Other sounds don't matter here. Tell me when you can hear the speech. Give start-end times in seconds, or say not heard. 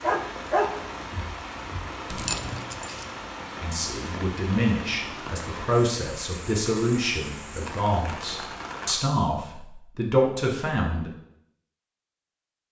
3.6-11.1.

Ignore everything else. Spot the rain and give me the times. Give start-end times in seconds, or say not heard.
0.0-9.0.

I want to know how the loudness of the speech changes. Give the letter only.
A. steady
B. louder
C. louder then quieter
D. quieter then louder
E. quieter
A.